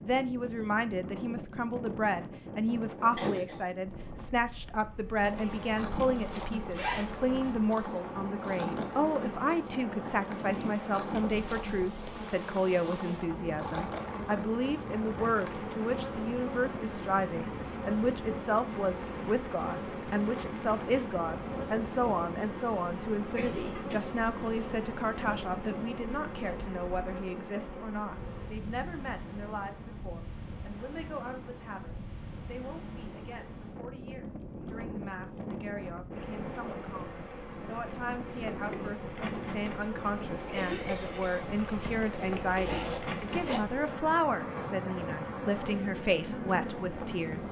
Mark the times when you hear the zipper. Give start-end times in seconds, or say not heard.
6.7-7.5, 41.5-43.6.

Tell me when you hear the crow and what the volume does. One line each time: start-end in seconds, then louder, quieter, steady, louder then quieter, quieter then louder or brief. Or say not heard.
not heard.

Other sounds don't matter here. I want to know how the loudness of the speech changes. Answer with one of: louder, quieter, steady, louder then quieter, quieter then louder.
quieter then louder.